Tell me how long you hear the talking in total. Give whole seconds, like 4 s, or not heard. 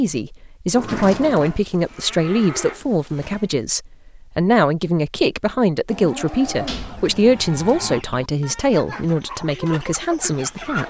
11 s.